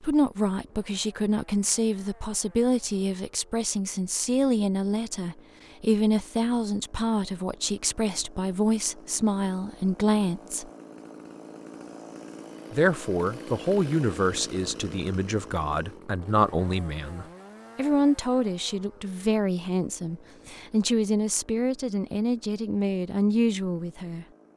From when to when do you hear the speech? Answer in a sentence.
The speech can be heard from 0.0 to 10.7 s and from 12.7 to 24.2 s.